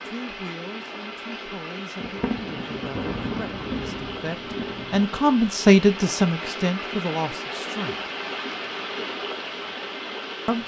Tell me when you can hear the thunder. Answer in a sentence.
You can hear the thunder from 2.0 to 5.1 s.